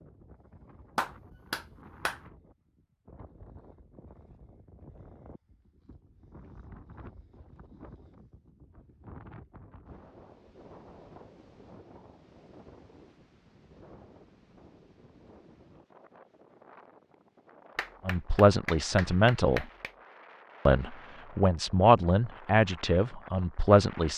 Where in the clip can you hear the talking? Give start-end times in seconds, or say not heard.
18.1-19.6, 20.6-24.1.